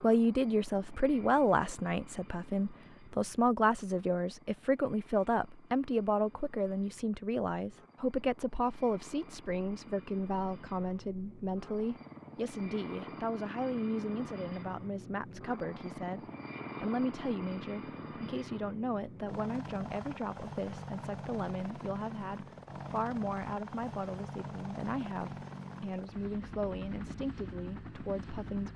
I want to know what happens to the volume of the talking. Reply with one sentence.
The loudness of the talking goes down.